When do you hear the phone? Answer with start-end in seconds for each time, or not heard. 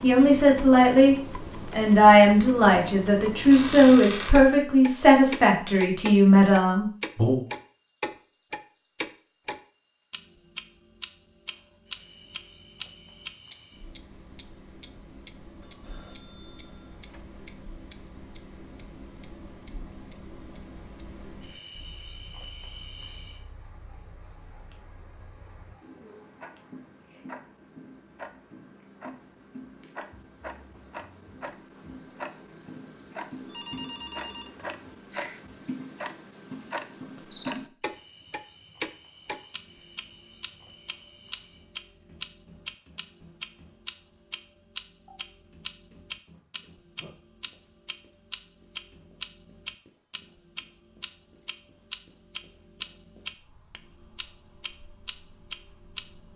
15.6-17.2, 33.5-35.4.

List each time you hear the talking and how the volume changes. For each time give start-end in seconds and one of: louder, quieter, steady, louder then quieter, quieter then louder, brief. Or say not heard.
0.0-7.4 steady.